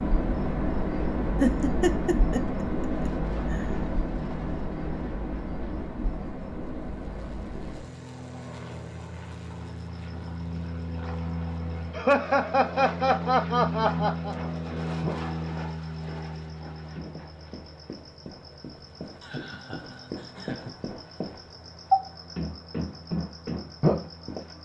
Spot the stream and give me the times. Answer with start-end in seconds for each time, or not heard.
not heard.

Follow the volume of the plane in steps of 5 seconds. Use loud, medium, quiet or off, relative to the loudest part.
medium, medium, loud, medium, quiet.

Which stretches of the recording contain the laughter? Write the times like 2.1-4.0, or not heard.
1.4-3.6, 11.9-14.3, 19.2-20.8.